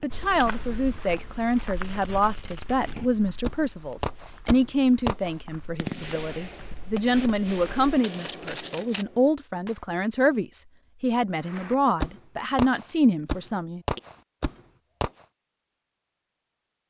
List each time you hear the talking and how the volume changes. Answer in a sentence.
The talking can be heard from 0.0 to 14.0 s, at a steady volume.